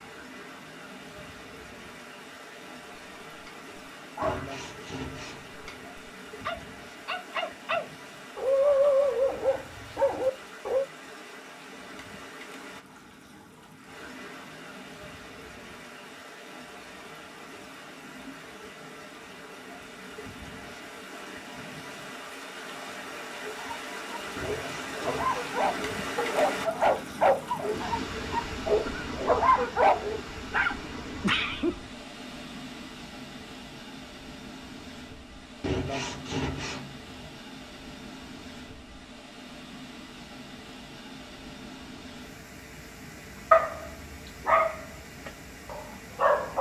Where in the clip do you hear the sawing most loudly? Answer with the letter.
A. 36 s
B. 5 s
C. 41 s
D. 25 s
A.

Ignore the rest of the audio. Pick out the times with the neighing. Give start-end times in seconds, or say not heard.
not heard.